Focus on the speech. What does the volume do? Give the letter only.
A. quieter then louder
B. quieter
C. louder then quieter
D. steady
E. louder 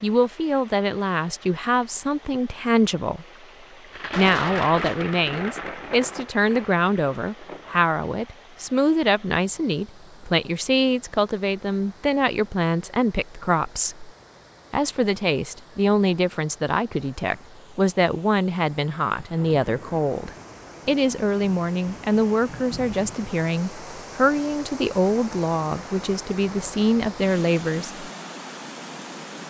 D.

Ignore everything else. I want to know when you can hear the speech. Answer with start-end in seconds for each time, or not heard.
0.0-3.2, 4.2-14.1, 14.7-28.1.